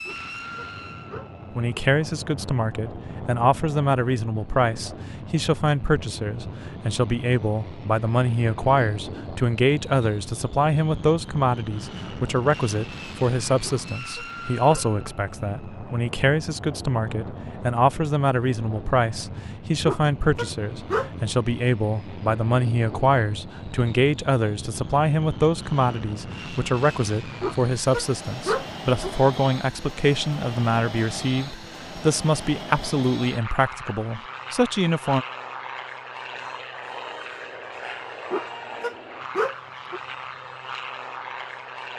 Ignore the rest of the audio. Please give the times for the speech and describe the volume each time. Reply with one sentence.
The speech can be heard from 1.5 to 35.2 s, at a steady volume.